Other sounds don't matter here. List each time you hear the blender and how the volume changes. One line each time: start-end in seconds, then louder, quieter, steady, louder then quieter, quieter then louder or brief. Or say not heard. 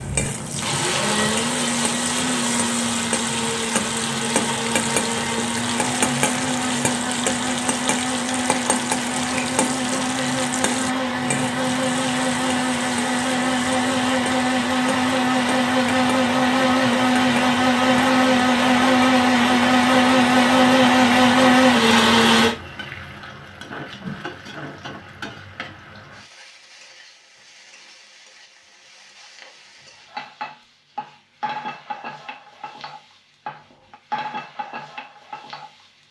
0.0-22.6 louder.